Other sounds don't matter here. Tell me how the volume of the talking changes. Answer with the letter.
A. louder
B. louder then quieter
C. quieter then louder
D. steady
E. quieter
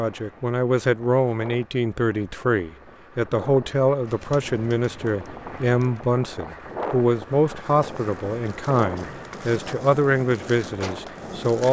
D.